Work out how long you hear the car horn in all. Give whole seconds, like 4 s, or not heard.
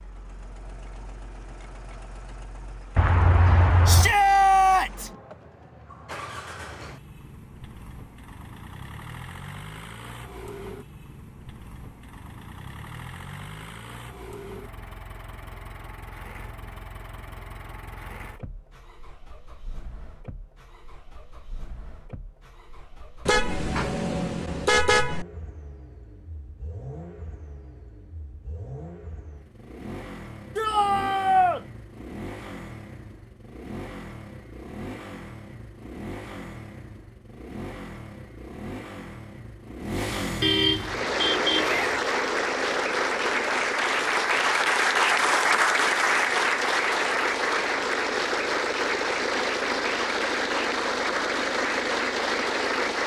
5 s.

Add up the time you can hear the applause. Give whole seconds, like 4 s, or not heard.
12 s.